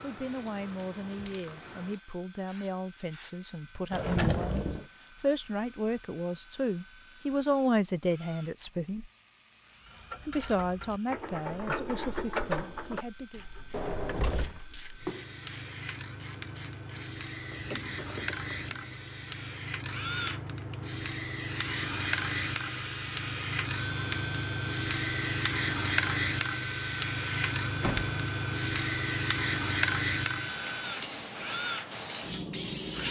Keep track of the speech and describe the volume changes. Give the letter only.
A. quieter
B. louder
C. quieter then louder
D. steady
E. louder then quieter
E.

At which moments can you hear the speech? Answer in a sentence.
You can hear the speech from 0.0 to 9.1 s and from 10.2 to 13.4 s.